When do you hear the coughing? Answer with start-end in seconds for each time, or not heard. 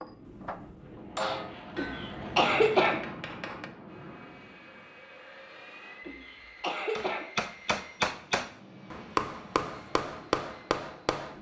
1.8-3.0, 6.0-7.2.